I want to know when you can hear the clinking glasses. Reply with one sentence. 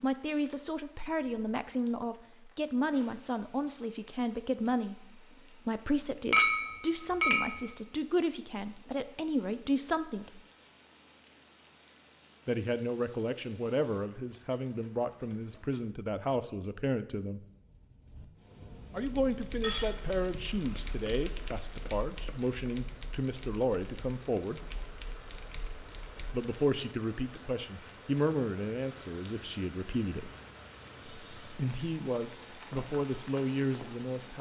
You can hear the clinking glasses from 6.3 to 7.7 s and from 19.6 to 20.2 s.